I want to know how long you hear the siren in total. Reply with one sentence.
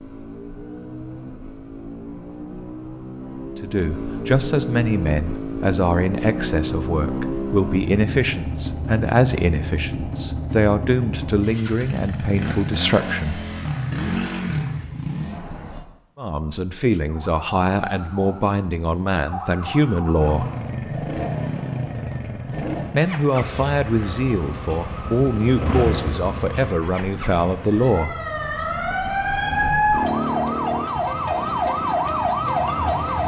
The siren can be heard for 13 seconds in total.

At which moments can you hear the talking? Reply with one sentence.
The talking can be heard from 3.6 to 13.4 s, from 16.1 to 20.5 s and from 22.9 to 28.1 s.